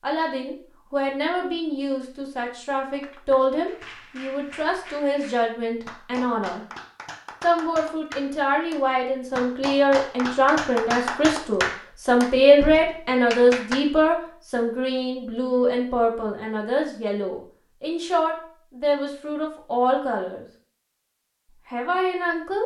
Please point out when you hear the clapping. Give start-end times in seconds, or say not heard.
2.9-13.8.